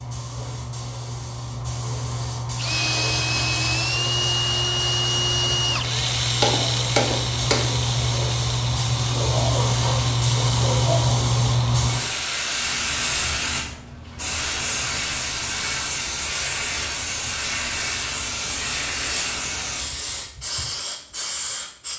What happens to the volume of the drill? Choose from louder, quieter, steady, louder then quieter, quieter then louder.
quieter.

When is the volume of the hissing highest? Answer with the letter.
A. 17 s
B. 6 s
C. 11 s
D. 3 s
C.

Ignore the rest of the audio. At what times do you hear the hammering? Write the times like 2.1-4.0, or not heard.
6.4-7.8.